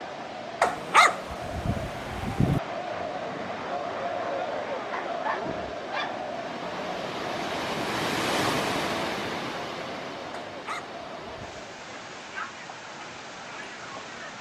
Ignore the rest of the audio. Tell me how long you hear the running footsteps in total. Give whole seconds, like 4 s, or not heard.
not heard.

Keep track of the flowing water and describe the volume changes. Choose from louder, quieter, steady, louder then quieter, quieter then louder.
louder then quieter.